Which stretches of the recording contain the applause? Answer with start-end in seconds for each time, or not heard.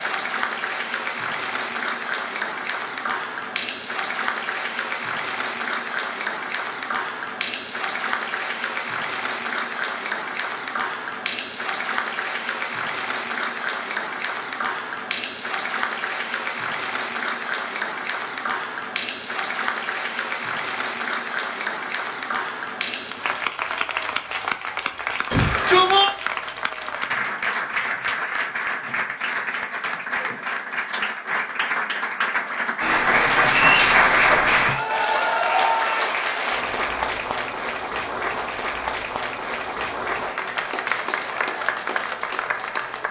0.0-43.0.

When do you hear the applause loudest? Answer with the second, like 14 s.
34 s.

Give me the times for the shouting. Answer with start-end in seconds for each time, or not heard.
25.3-26.1.